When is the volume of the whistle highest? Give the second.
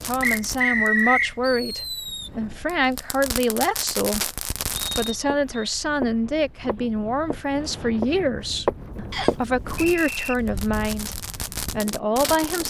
1 s.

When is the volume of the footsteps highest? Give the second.
9 s.